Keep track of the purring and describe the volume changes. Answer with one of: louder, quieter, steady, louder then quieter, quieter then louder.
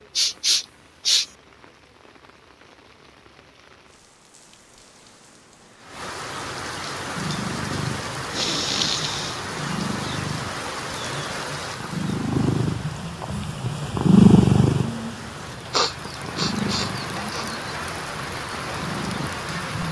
louder then quieter.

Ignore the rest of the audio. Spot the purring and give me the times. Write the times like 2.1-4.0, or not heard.
7.0-19.8.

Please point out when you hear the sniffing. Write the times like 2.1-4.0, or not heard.
0.1-1.2, 8.3-9.3, 15.7-17.4.